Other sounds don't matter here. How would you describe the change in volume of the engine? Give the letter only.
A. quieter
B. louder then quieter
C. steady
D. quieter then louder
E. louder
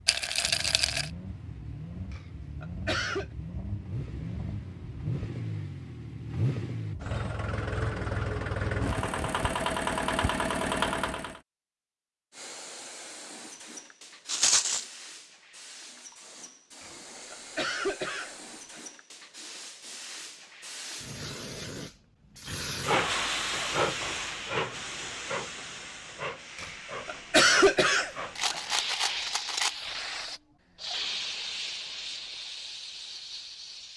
E.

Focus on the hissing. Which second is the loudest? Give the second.
23 s.